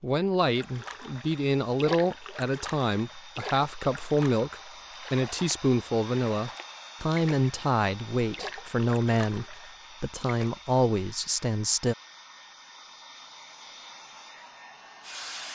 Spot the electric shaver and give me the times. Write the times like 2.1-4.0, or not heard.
not heard.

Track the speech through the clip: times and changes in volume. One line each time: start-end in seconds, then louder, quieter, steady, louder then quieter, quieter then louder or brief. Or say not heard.
0.0-11.9 steady.